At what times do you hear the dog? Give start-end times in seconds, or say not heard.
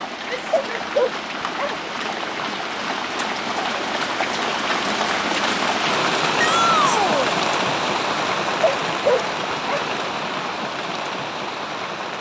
0.5-1.8, 8.6-9.8.